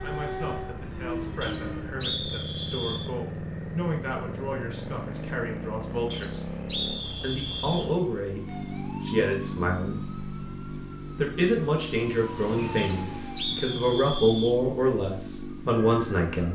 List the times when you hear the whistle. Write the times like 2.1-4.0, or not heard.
1.4-3.1, 6.1-7.9, 12.8-14.6.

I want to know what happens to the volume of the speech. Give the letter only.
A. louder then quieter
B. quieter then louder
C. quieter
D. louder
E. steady
D.